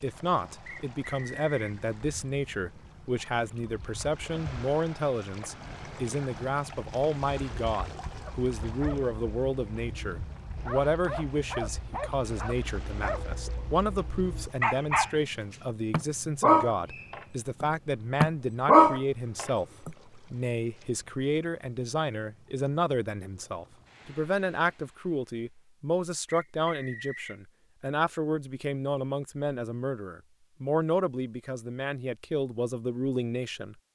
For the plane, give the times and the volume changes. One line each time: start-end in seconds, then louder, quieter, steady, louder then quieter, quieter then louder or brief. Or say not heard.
not heard.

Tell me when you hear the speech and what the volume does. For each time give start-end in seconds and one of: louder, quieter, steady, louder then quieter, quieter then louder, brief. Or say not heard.
0.0-33.8 steady.